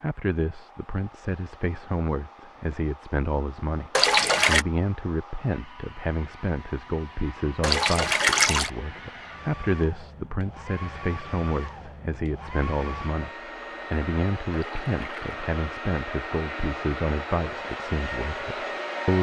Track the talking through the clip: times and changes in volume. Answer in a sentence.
The talking can be heard from 0.0 to 19.1 s, at a steady volume.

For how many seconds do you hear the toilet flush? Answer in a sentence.
The toilet flush can be heard for 3 seconds in total.